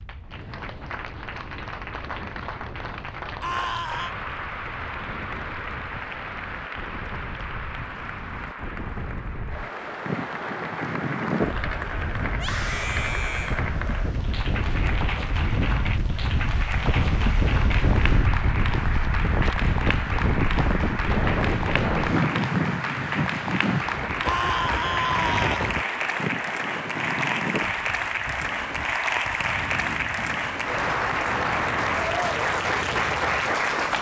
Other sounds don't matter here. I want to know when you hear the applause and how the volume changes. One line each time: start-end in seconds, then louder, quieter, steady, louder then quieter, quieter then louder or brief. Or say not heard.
0.0-33.9 louder.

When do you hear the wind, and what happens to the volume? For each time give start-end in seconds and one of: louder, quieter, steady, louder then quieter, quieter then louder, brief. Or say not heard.
0.0-33.9 louder then quieter.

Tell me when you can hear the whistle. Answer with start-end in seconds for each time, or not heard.
not heard.